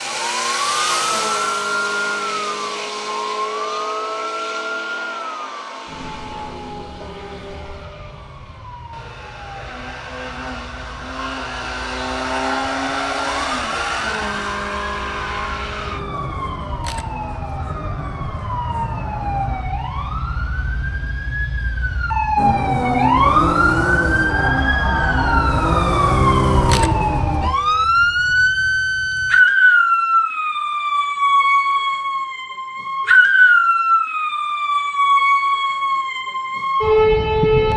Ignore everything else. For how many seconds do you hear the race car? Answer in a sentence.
You can hear the race car for 25 seconds altogether.